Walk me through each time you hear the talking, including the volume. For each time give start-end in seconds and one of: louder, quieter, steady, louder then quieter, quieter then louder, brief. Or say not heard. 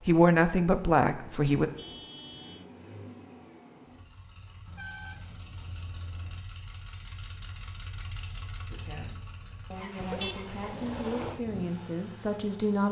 0.1-1.7 brief
8.7-12.8 louder.